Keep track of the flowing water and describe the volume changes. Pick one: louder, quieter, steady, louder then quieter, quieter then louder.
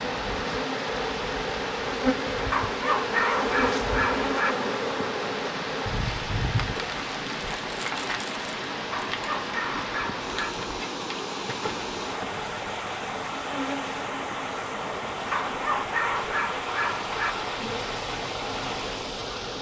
steady.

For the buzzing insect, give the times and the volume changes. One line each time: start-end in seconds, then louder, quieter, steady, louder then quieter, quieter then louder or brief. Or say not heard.
0.0-19.5 quieter.